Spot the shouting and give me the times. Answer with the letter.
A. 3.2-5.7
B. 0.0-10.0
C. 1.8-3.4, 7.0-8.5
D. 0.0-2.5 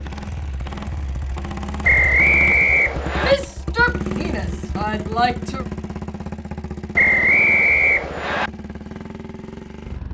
A.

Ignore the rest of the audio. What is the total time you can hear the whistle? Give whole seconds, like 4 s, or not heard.
3 s.